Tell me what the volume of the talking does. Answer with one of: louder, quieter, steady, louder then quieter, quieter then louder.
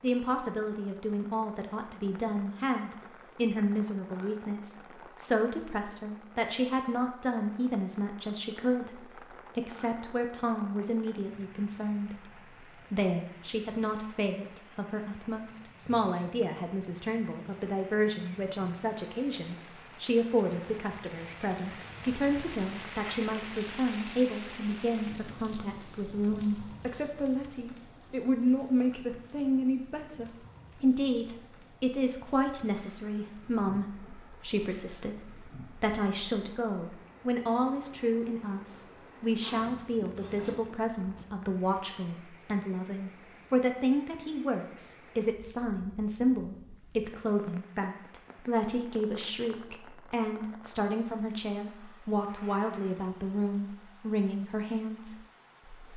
steady.